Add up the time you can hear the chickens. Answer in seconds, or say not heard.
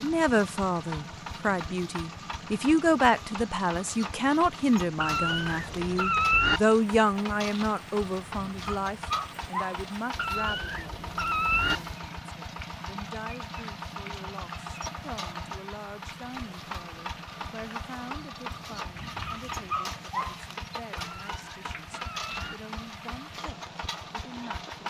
not heard.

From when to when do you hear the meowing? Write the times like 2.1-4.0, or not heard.
5.0-6.6, 10.2-11.8, 20.9-22.6.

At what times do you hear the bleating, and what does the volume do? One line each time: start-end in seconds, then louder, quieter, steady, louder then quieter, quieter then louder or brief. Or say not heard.
not heard.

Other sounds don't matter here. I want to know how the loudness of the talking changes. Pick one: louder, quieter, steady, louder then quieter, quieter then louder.
quieter.